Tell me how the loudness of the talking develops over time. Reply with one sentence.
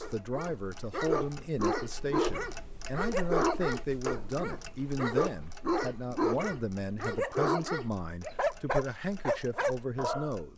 The loudness of the talking stays about the same.